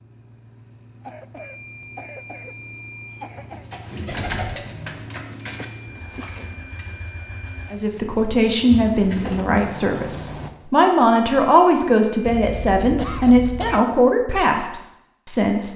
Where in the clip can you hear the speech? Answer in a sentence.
You can hear the speech from 7.7 to 15.7 s.